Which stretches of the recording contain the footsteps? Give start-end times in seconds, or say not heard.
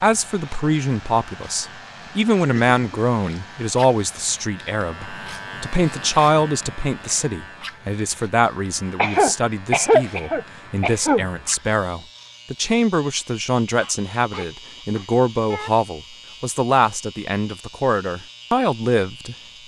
not heard.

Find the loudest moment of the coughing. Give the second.
10 s.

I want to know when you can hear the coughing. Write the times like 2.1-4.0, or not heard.
2.5-3.0, 8.9-11.2, 13.8-15.7.